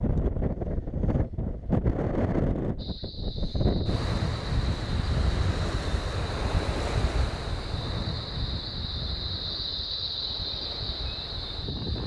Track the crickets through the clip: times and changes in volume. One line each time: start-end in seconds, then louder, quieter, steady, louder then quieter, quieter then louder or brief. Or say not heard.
2.8-12.0 louder.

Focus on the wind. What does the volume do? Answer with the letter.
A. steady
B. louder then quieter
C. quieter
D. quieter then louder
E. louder
C.